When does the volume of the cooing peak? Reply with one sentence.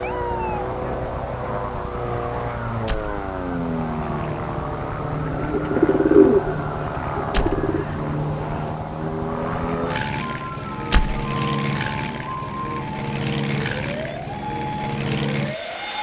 The volume of the cooing peaks at 6 seconds.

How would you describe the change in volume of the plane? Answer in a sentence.
The loudness of the plane stays about the same.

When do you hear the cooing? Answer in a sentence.
The cooing can be heard from 5.3 to 7.8 s.